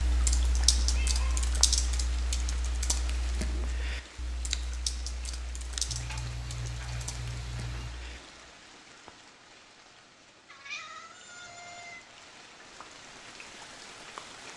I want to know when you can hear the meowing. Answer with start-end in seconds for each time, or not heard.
0.8-1.5, 5.8-7.9, 10.4-12.1.